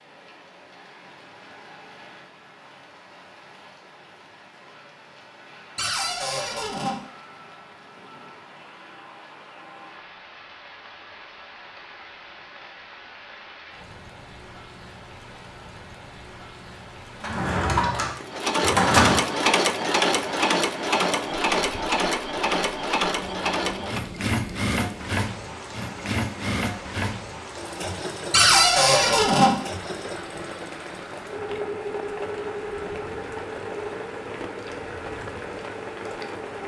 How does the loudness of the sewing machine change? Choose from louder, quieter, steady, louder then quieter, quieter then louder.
quieter.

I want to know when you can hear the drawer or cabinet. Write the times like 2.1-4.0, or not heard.
5.8-7.0, 17.2-19.2, 28.3-29.5.